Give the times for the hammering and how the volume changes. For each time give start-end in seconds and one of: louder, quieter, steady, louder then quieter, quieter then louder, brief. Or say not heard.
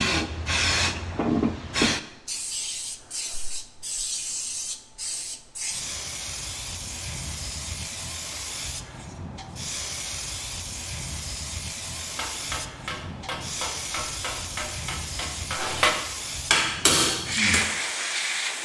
12.0-17.8 louder.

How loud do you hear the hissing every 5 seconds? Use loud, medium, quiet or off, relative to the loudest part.
loud, medium, medium, loud.